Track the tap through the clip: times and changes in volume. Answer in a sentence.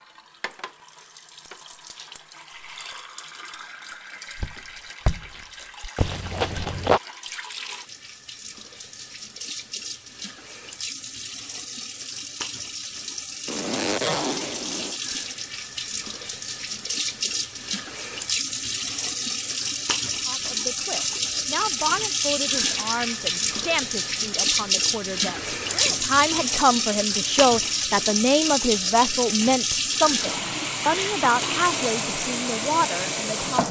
The tap can be heard from 0.0 to 33.6 s, getting louder.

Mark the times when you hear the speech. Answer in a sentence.
The speech can be heard from 20.2 to 33.6 s.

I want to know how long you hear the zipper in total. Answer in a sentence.
The zipper can be heard for 4 seconds in total.